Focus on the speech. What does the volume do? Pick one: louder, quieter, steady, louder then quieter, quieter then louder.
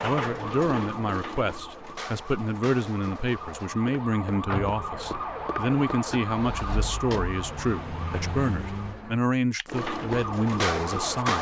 steady.